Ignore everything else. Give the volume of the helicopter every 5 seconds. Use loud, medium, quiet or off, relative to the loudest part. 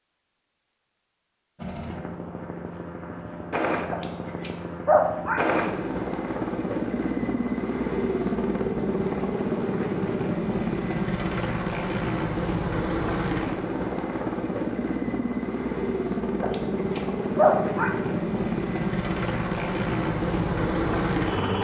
medium, loud, loud, loud, loud.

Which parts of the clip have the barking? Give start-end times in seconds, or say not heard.
3.9-5.5, 16.4-17.9.